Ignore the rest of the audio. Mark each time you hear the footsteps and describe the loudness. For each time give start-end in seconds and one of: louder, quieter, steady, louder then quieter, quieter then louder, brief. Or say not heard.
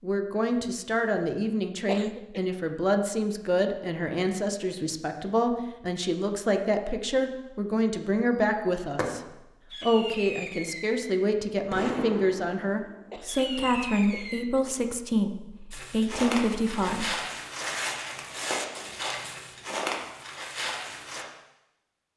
15.7-21.2 steady.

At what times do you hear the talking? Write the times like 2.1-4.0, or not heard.
0.0-9.2, 9.8-17.1.